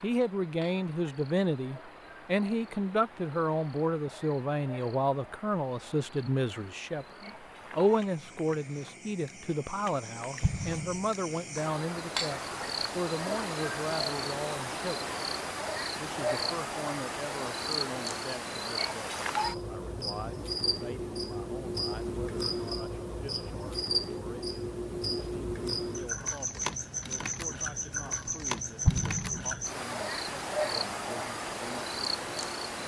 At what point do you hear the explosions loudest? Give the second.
29 s.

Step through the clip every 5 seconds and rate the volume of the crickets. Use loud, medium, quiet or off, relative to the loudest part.
quiet, quiet, loud, loud, loud, loud, loud.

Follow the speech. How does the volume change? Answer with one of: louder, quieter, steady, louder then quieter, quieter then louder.
quieter.